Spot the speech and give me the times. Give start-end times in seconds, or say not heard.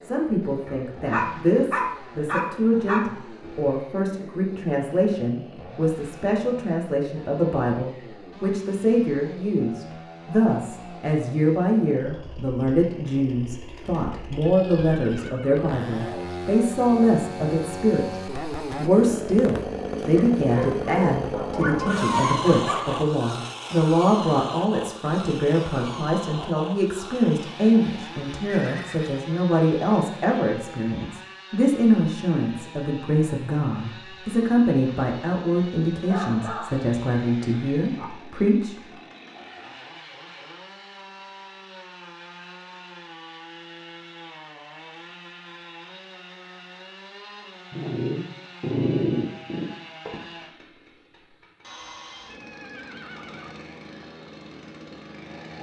0.0-18.1, 18.8-38.8.